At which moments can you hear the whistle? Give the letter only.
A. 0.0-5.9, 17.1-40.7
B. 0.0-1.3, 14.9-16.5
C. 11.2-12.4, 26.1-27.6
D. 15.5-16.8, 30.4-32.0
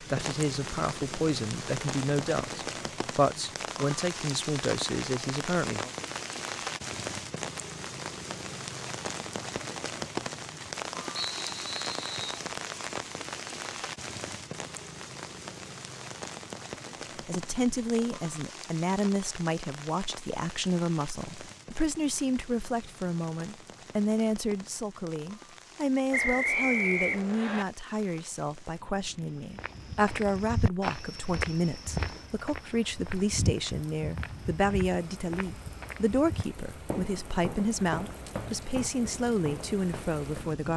C.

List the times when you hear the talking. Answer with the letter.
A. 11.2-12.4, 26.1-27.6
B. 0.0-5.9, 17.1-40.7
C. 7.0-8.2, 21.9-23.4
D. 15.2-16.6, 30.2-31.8
B.